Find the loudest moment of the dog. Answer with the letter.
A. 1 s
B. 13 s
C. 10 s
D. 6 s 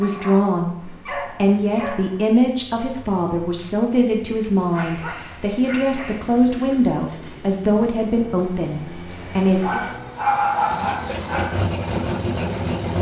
C.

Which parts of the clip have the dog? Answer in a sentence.
You can hear the dog from 0.0 to 2.3 s, from 4.7 to 6.2 s and from 9.6 to 11.6 s.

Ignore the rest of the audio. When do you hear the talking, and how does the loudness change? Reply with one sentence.
The talking can be heard from 0.0 to 9.8 s, at a steady volume.